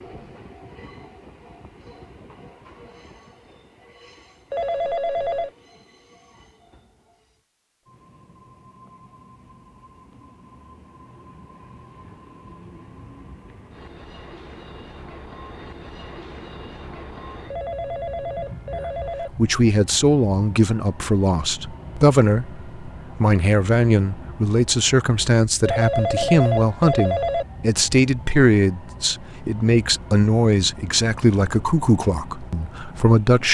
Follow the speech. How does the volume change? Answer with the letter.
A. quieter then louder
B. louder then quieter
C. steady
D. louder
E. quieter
C.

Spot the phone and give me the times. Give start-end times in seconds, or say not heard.
4.5-5.5, 17.5-19.3, 25.6-27.4.